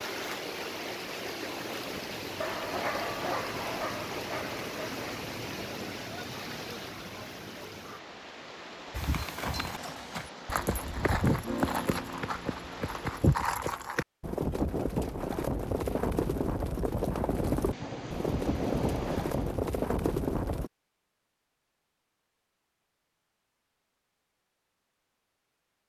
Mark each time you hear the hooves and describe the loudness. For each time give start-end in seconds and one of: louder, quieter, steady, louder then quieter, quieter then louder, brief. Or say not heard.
8.9-20.7 steady.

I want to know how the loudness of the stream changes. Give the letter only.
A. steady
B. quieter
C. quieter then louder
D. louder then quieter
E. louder
B.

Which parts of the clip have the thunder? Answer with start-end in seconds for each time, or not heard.
17.7-19.6.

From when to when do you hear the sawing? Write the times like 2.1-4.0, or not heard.
not heard.